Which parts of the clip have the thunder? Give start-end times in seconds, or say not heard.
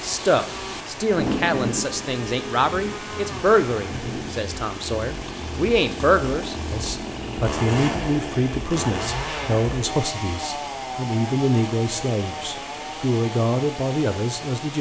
1.1-4.3.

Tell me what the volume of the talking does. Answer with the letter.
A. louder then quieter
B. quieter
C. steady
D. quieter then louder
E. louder
C.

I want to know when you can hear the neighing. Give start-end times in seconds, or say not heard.
not heard.